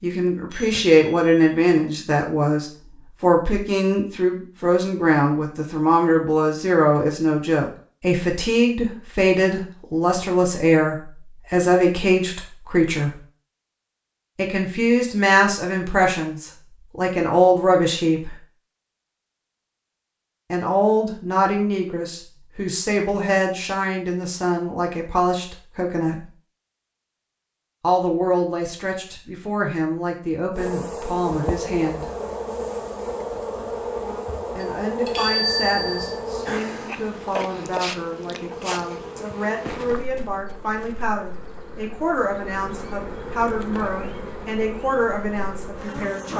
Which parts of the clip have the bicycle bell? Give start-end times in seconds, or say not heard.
0.5-1.5, 34.6-36.2.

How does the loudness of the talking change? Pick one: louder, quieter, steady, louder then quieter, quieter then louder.
quieter.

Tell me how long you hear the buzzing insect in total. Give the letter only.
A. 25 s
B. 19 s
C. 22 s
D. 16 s
D.